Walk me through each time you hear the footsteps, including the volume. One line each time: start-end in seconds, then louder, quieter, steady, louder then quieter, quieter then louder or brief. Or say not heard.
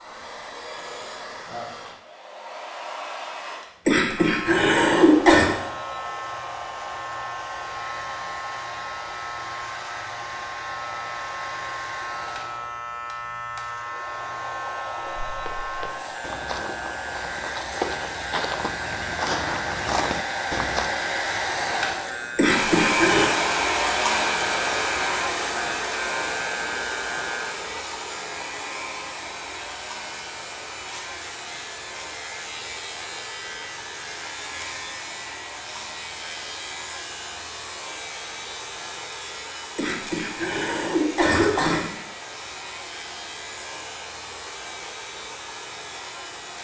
15.3-20.9 louder.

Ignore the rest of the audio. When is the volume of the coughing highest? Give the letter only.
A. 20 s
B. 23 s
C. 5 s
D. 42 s
C.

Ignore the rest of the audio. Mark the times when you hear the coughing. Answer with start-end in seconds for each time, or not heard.
3.9-5.5, 22.4-23.3, 39.8-41.9.